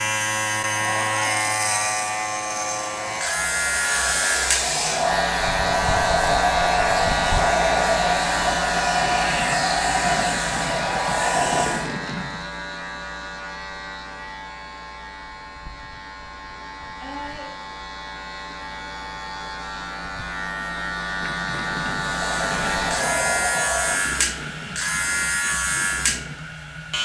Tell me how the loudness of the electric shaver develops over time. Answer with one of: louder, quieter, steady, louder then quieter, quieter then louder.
quieter then louder.